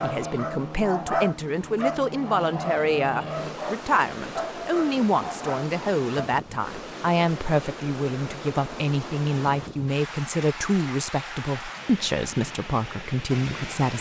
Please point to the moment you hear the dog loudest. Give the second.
1 s.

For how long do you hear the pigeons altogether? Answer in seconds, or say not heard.
not heard.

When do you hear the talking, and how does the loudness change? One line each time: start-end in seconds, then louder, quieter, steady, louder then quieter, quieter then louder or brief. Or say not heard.
0.0-13.9 steady.